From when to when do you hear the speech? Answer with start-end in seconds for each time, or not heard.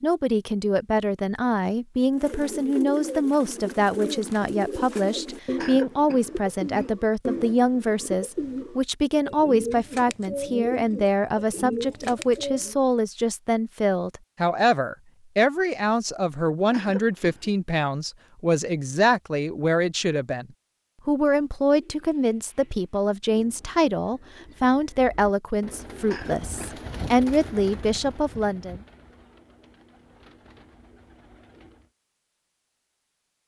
0.0-20.4, 21.1-28.8.